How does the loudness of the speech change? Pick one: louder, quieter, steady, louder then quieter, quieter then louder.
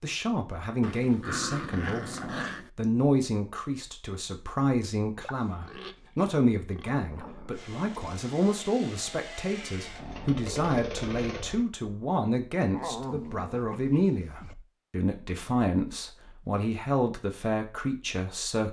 steady.